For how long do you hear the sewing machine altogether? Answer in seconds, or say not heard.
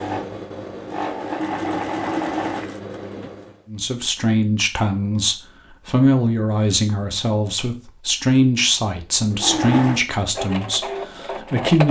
6 s.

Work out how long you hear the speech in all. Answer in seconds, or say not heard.
8 s.